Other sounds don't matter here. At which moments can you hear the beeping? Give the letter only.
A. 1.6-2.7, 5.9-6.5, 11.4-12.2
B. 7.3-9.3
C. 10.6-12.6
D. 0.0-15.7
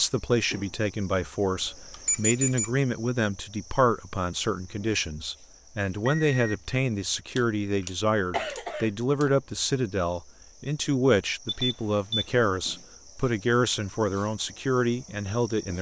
A.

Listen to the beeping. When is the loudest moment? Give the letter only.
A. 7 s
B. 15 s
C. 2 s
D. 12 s
C.